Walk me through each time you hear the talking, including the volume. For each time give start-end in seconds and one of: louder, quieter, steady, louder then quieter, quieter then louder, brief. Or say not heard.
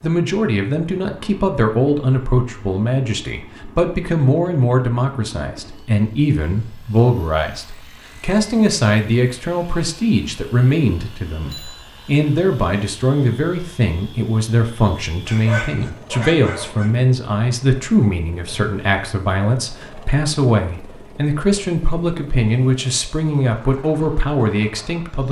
0.0-25.2 steady.